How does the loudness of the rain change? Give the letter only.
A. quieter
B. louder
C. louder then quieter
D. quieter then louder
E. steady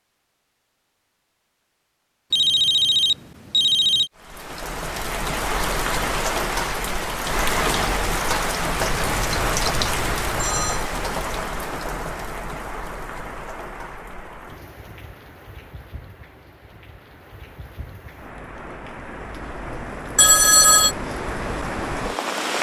D.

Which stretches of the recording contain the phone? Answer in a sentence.
The phone can be heard from 2.3 to 4.1 s, from 8.8 to 10.8 s and from 20.1 to 20.9 s.